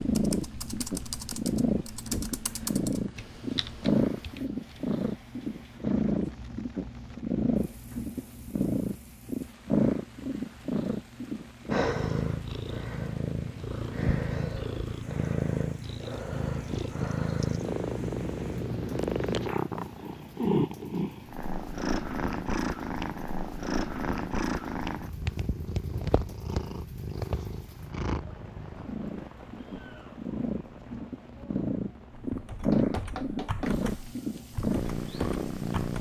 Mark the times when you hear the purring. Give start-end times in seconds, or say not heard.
0.0-35.9.